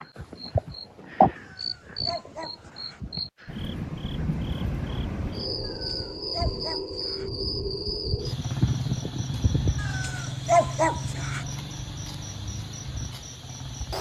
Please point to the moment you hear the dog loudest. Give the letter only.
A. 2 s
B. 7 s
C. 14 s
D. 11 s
D.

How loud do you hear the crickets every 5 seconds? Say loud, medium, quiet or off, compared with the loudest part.
loud, loud, medium.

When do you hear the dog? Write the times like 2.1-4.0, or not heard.
1.4-3.0, 5.6-7.3, 9.8-11.4.